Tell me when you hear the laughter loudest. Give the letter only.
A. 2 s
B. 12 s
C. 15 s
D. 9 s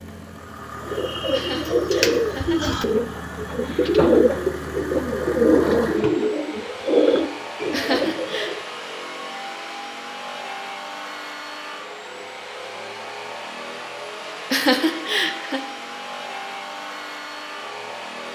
C.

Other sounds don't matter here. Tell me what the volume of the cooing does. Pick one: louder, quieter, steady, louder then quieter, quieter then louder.
steady.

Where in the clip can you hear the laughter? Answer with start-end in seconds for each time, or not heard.
1.3-2.7, 7.7-8.6, 14.5-15.6.